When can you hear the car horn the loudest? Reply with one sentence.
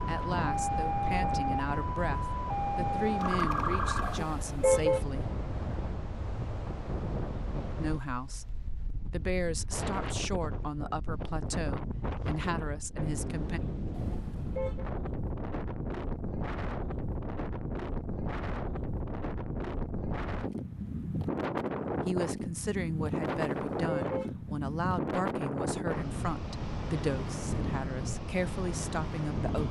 The volume of the car horn peaks at 5 seconds.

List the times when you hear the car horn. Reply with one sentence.
The car horn can be heard from 4.0 to 5.0 s, from 13.9 to 14.8 s and from 23.5 to 24.3 s.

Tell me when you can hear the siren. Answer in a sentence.
You can hear the siren from 0.0 to 4.2 s.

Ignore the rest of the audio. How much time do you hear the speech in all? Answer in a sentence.
You can hear the speech for 19 seconds altogether.